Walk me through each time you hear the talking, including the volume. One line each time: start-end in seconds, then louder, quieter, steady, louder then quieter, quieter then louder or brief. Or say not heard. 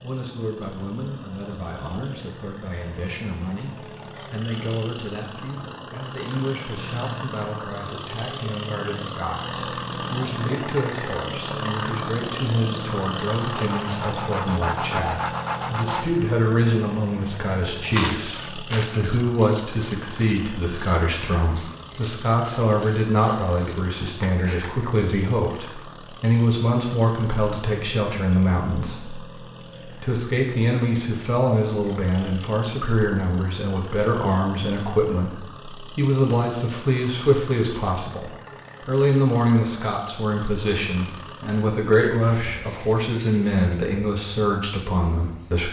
0.0-45.6 louder.